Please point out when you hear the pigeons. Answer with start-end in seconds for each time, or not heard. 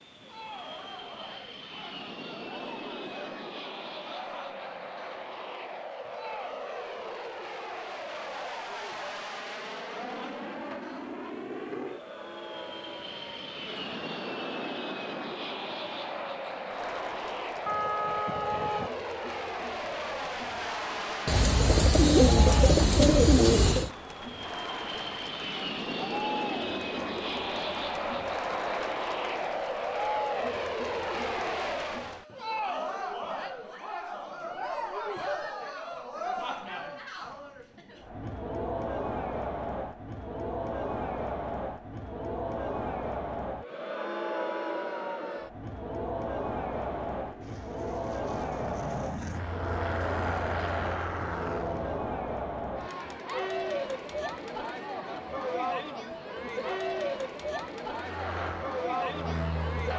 21.2-23.9.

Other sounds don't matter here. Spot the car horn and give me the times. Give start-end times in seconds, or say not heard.
17.6-18.9.